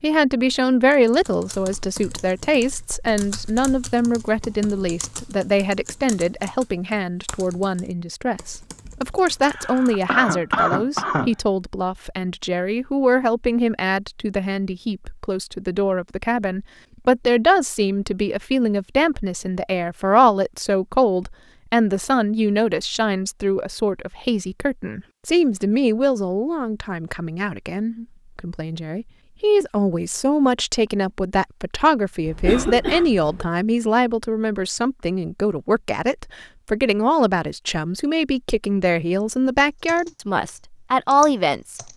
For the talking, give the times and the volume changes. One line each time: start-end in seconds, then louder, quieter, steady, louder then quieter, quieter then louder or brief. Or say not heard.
0.0-41.8 steady.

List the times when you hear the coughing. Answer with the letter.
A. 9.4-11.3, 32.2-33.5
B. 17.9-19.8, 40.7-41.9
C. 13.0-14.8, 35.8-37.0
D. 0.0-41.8
A.